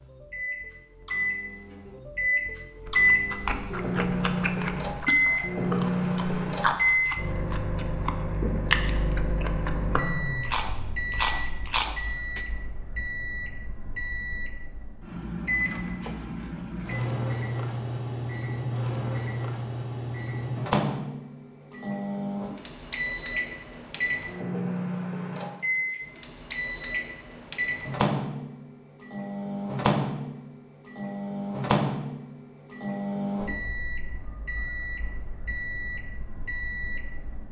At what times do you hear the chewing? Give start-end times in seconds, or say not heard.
2.9-12.4.